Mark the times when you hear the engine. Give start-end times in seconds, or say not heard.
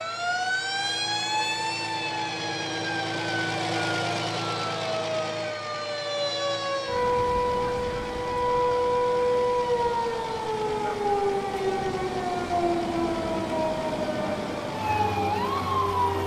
0.0-16.2.